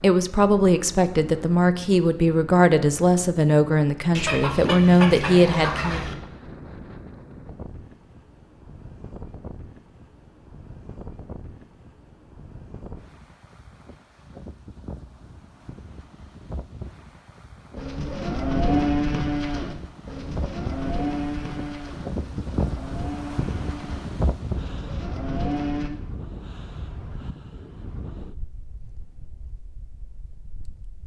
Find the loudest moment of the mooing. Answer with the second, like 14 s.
19 s.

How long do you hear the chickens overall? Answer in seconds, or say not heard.
2 s.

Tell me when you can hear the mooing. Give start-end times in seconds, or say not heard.
17.8-25.9.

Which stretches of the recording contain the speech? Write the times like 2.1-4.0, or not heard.
0.0-6.0.